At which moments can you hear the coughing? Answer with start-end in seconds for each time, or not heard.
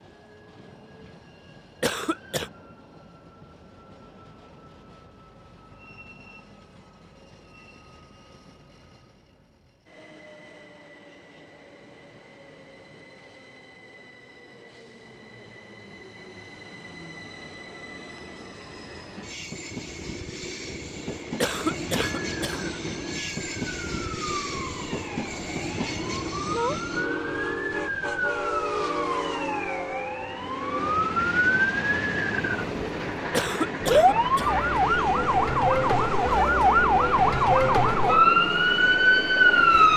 1.8-2.5, 21.4-22.6, 33.3-34.5.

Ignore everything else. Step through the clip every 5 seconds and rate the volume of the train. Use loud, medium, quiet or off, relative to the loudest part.
quiet, quiet, quiet, medium, loud, loud, loud, loud.